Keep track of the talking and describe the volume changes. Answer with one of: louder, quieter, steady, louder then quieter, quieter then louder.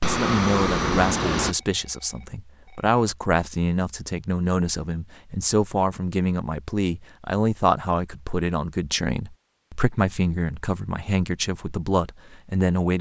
steady.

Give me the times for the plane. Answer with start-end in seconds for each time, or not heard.
0.0-1.6.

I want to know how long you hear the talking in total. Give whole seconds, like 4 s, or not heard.
13 s.